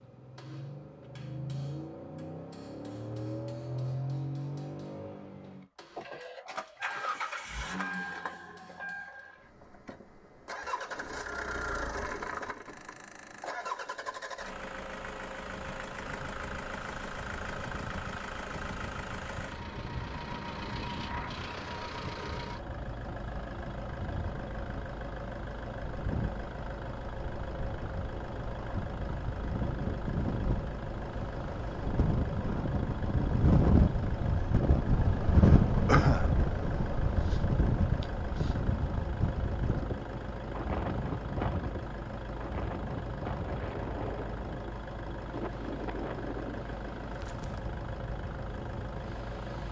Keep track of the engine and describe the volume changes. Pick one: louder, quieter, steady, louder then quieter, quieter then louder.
steady.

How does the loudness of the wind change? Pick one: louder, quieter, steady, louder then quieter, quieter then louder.
louder then quieter.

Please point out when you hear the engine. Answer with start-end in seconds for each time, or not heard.
0.0-49.6.